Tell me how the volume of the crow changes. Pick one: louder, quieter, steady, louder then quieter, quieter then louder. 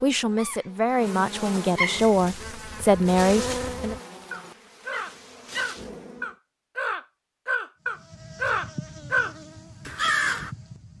louder.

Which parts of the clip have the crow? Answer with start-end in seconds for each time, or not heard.
1.9-10.5.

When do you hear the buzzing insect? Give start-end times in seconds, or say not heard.
0.0-6.3, 7.9-10.9.